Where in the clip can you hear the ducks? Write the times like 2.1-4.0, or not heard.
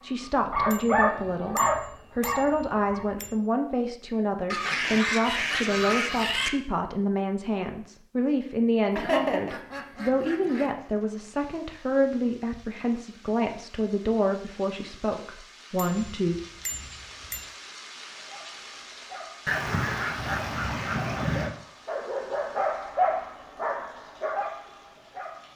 4.5-6.5, 8.9-10.8, 19.4-21.6.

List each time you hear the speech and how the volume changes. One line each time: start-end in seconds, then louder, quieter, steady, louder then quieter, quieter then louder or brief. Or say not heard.
0.0-16.4 steady.